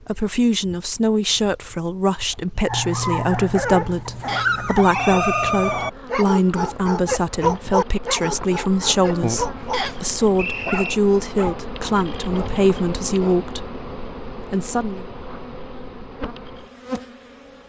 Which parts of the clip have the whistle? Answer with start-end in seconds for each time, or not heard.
4.2-5.5, 9.7-10.9.